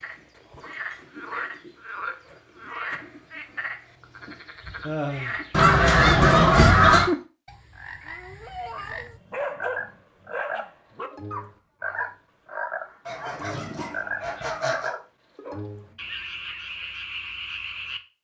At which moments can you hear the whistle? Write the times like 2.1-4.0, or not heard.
not heard.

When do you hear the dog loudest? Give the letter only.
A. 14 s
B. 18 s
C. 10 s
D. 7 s
C.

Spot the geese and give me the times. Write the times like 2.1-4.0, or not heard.
5.5-7.1, 13.1-14.9.